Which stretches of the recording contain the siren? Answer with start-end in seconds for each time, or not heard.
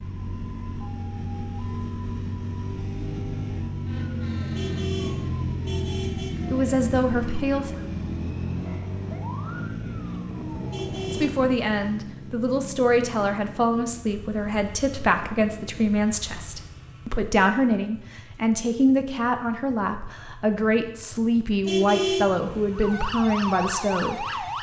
0.0-11.7, 22.7-24.5.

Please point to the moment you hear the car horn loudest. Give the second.
22 s.